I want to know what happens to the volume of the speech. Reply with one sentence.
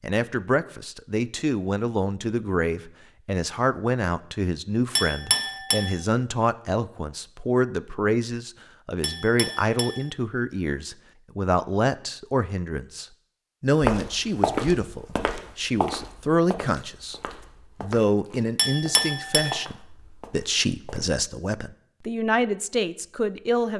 The loudness of the speech stays about the same.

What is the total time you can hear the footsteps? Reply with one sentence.
The footsteps can be heard for 7 seconds in total.